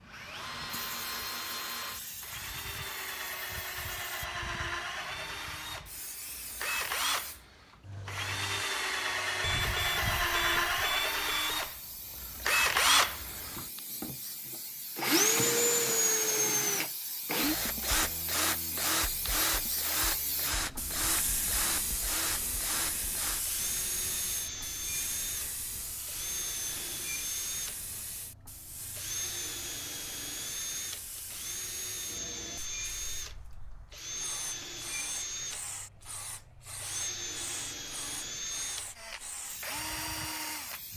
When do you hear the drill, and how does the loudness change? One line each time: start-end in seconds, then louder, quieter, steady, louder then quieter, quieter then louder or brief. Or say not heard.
0.0-40.8 louder then quieter.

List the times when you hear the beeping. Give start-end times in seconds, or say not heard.
9.4-11.7.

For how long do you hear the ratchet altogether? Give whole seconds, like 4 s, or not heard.
not heard.